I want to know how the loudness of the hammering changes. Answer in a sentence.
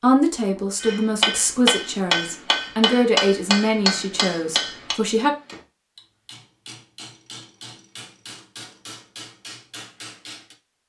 The loudness of the hammering goes down.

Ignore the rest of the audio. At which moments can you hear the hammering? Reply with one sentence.
You can hear the hammering from 0.8 to 10.6 s.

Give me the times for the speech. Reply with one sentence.
You can hear the speech from 0.0 to 5.3 s.